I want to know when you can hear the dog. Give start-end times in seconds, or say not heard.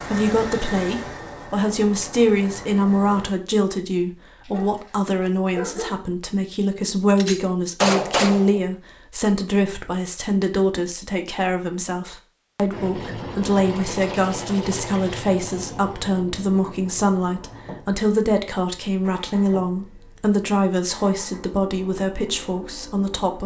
4.5-6.0.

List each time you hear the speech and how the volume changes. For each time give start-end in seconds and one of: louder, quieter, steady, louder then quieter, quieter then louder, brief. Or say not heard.
0.0-23.4 steady.